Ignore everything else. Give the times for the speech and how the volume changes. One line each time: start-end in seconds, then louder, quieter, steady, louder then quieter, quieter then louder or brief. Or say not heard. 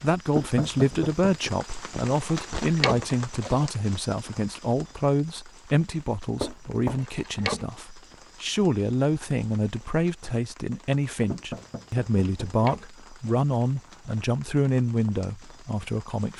0.0-16.3 steady.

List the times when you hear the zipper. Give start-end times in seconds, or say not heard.
2.5-3.7, 7.0-7.7, 12.2-13.3.